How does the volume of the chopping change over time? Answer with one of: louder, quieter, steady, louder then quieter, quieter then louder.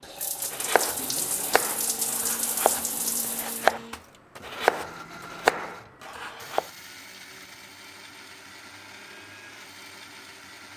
louder.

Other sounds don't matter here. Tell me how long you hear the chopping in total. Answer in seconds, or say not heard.
6 s.